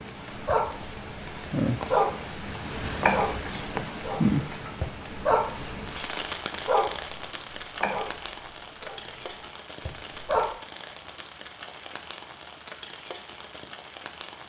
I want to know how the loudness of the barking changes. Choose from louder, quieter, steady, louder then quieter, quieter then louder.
quieter.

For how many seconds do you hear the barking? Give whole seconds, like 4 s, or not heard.
10 s.